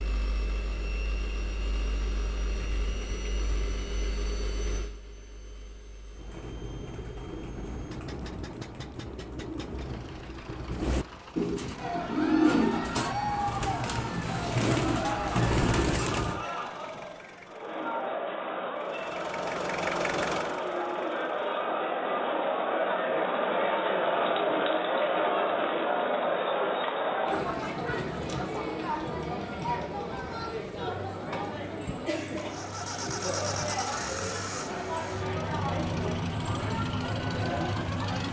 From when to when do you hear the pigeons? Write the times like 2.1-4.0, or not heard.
6.1-16.4.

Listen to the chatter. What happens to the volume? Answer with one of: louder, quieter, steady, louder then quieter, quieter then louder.
louder then quieter.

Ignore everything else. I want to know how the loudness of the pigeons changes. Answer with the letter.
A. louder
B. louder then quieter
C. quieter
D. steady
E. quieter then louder
A.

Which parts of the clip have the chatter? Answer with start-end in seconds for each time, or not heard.
11.8-38.2.